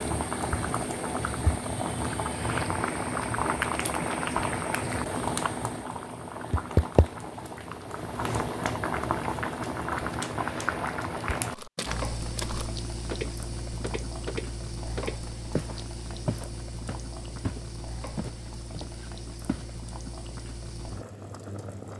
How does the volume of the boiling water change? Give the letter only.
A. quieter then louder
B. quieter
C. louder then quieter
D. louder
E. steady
B.